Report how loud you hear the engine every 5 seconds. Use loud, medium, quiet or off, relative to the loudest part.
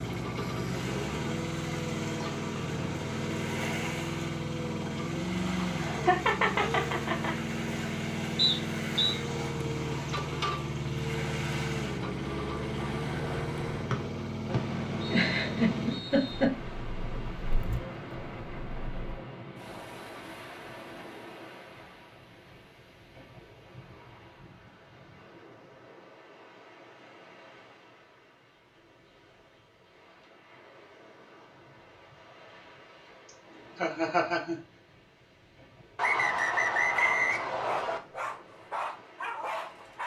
loud, loud, loud, loud, off, off, off, off.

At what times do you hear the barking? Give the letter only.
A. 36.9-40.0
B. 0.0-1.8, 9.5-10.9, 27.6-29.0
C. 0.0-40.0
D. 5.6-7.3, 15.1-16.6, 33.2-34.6
A.